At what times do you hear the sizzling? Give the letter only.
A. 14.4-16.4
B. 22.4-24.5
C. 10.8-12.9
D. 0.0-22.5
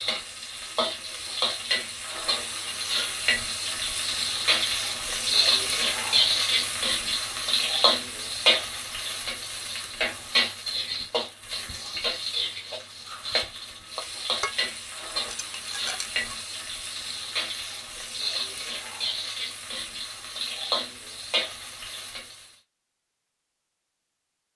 D.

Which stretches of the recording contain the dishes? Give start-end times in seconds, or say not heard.
14.4-16.4.